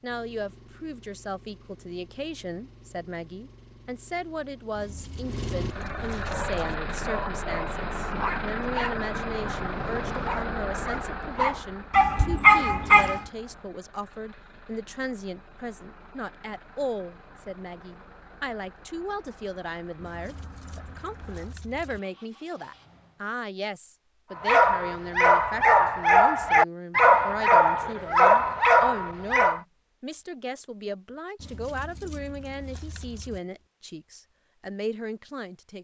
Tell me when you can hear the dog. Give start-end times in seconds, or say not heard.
6.2-13.2, 24.4-29.6.